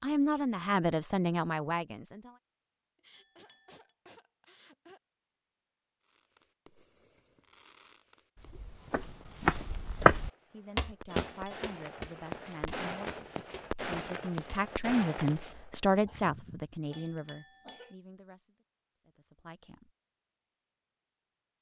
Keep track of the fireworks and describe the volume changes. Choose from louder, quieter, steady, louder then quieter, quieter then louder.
louder.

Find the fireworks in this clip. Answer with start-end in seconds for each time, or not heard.
6.0-15.8.